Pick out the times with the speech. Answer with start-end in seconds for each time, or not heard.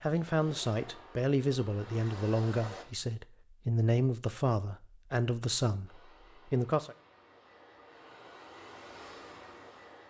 0.0-7.0.